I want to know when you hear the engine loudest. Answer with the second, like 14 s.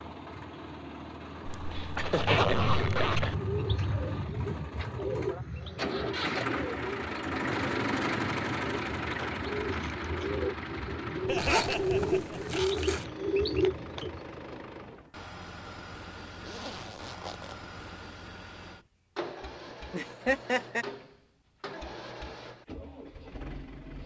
8 s.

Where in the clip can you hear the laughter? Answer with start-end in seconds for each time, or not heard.
1.5-3.4, 11.2-12.4, 19.9-20.9.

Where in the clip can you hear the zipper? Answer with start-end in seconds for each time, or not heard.
1.4-3.4, 11.3-13.1, 16.4-17.6.